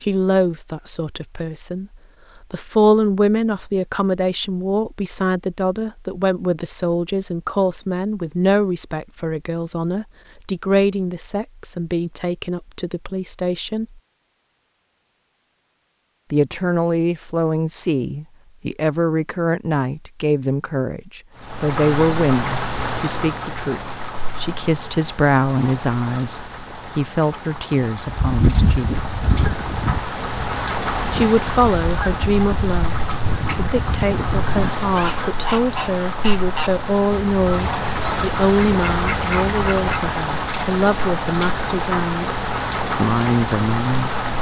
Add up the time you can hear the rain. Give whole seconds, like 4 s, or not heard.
23 s.